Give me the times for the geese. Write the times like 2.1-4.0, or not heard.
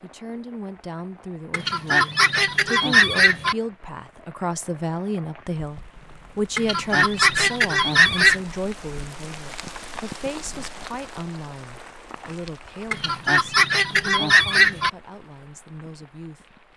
1.5-3.5, 6.5-8.4, 12.9-14.9.